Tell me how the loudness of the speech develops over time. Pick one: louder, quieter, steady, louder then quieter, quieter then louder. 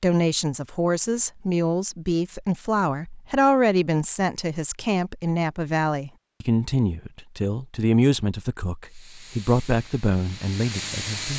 steady.